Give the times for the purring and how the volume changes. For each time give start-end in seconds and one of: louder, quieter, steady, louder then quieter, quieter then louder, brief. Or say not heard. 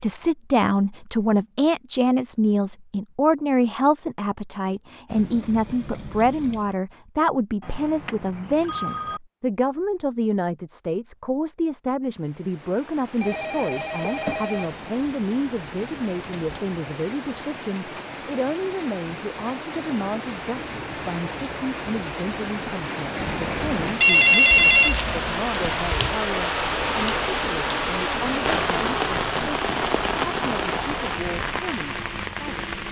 not heard.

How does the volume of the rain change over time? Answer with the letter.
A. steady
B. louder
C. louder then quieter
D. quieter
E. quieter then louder
B.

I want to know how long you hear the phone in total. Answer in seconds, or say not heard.
5 s.